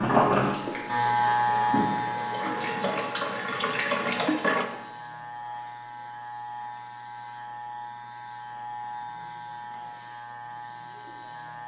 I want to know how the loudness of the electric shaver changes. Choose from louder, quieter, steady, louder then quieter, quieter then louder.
quieter.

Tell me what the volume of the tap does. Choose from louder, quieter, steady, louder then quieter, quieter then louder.
louder.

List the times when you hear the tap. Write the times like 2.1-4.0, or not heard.
0.1-4.7.